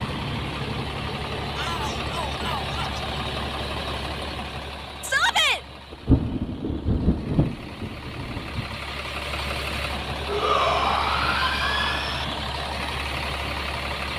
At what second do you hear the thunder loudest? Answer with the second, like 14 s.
6 s.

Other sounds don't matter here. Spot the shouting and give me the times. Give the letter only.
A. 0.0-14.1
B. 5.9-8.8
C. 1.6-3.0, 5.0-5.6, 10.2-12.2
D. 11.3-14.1
C.